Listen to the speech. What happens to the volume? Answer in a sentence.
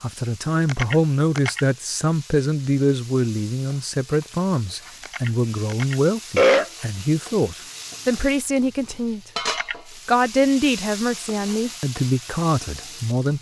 The loudness of the speech stays about the same.